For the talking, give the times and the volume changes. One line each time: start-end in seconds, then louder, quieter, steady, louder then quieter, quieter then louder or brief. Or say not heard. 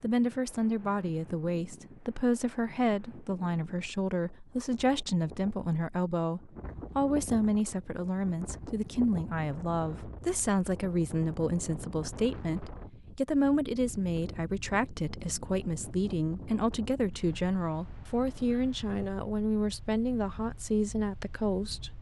0.0-21.9 steady.